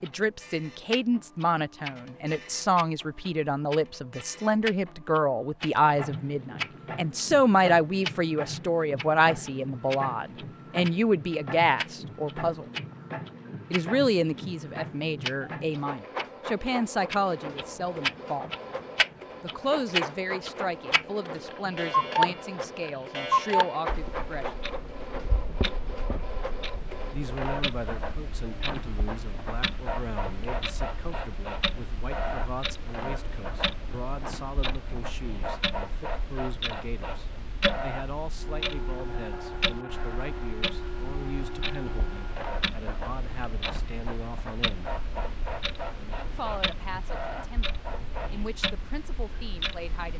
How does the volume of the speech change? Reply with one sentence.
The volume of the speech goes down.